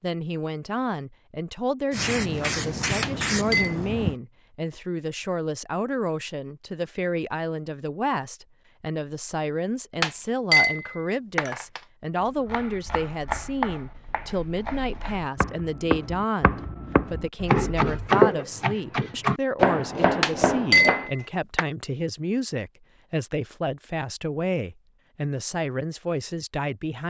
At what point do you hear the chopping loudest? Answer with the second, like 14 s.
18 s.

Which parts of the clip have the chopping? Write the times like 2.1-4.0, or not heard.
12.2-21.2.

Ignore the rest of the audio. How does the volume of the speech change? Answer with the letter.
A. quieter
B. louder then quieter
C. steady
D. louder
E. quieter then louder
C.